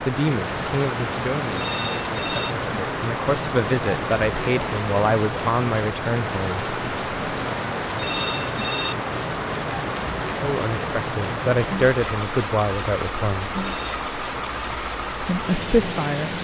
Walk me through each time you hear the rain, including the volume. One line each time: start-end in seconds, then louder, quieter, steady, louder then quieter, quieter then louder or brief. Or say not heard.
0.0-16.3 steady.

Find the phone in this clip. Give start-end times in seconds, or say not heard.
1.4-2.5, 7.9-8.9, 13.6-14.0.